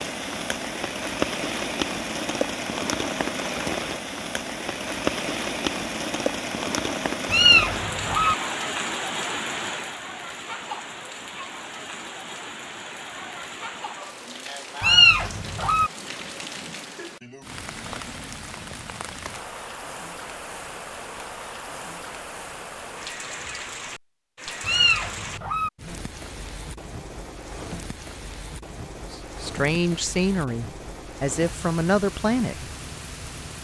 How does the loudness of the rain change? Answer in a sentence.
The volume of the rain goes down.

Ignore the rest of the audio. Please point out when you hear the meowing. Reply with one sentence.
You can hear the meowing from 7.2 to 8.3 s, from 14.8 to 15.9 s and from 24.6 to 25.7 s.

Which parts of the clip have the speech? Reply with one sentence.
The speech can be heard from 29.1 to 32.7 s.